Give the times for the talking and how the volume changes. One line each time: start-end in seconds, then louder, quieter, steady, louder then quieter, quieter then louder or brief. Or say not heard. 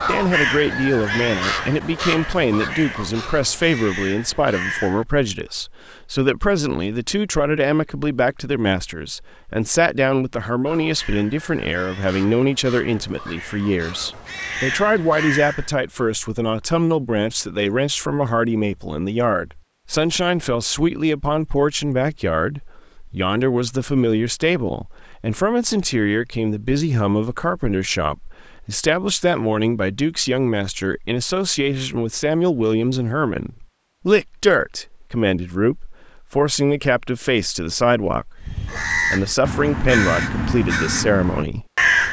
0.1-41.9 steady.